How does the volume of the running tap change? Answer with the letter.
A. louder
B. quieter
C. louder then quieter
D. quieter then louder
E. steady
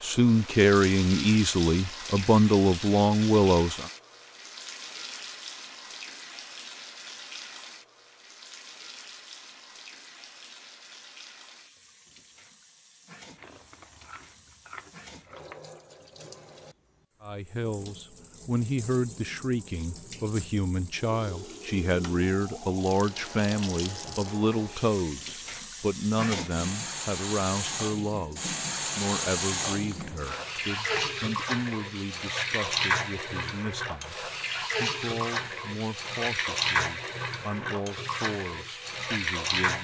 D.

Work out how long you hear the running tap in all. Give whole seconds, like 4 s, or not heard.
40 s.